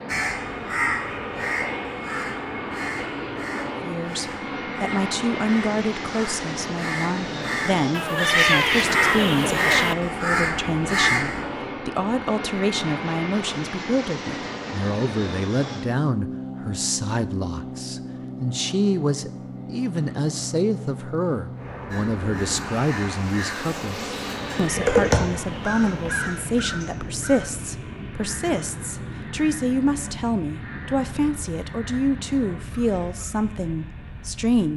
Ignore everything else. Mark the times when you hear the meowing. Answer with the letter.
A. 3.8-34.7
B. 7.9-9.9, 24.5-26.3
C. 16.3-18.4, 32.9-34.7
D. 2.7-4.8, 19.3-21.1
B.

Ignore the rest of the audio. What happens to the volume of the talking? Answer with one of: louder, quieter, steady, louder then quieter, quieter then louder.
steady.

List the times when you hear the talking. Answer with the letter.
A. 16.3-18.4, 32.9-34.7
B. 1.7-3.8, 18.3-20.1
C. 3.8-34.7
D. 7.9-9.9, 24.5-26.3
C.